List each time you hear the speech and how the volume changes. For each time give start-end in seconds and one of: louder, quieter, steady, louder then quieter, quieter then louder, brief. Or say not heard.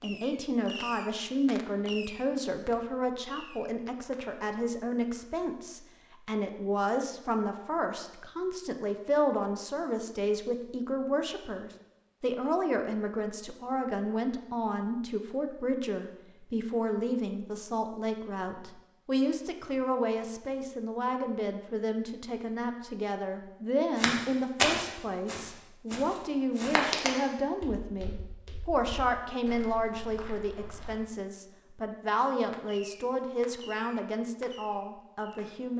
0.0-35.7 steady.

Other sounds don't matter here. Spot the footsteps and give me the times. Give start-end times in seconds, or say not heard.
23.9-31.0.